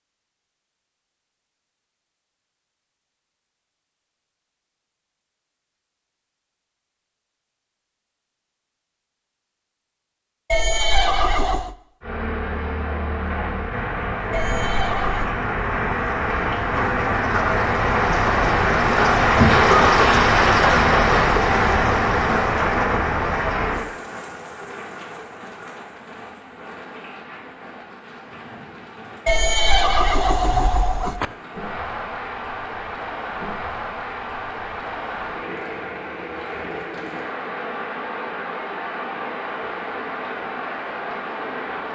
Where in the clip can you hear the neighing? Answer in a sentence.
You can hear the neighing from 10.5 to 11.8 s, from 14.3 to 15.3 s and from 29.2 to 31.2 s.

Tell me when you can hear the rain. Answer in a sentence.
The rain can be heard from 12.0 to 41.9 s.